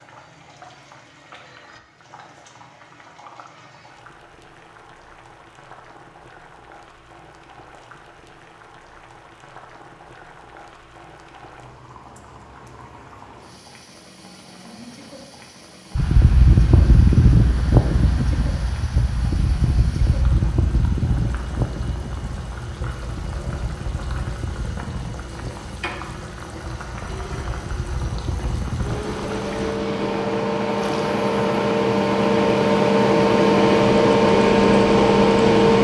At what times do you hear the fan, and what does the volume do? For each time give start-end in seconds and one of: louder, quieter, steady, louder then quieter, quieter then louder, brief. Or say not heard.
15.9-35.7 quieter then louder.